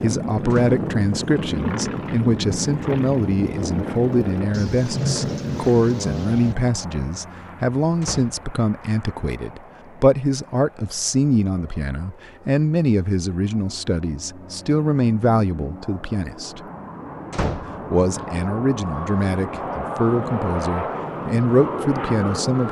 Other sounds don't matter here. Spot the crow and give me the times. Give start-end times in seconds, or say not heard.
not heard.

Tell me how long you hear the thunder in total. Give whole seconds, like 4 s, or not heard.
2 s.